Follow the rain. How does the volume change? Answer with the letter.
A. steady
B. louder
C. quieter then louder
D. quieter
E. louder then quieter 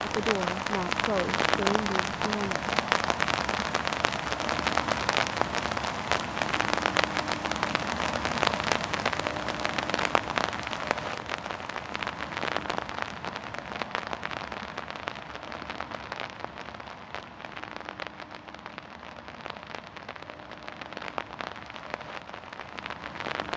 D.